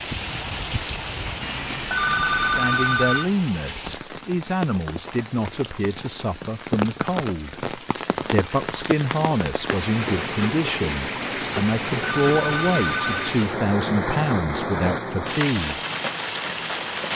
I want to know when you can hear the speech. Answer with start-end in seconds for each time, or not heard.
2.4-15.8.